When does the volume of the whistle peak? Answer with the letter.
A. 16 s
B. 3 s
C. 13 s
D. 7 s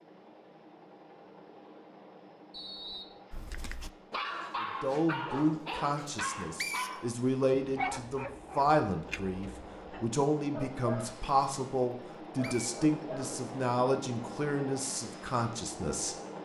D.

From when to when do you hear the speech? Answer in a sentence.
You can hear the speech from 4.6 to 16.1 s.